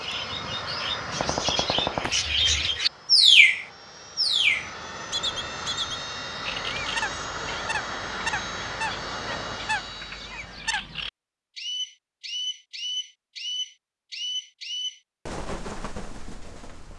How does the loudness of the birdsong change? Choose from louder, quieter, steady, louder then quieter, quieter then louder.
quieter.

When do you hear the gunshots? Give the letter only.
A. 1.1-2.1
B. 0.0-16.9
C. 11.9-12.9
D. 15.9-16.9
A.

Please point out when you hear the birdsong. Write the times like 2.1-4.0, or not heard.
0.0-16.9.